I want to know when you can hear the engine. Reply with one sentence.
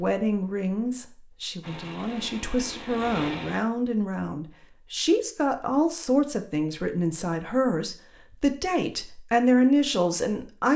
The engine can be heard from 1.6 to 3.6 s.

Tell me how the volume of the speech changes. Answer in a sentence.
The loudness of the speech goes up.